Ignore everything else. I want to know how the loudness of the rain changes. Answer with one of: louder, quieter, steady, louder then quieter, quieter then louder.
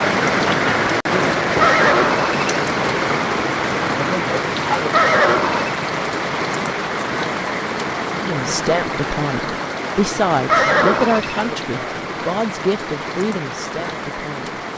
quieter.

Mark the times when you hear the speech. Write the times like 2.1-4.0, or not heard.
8.2-14.6.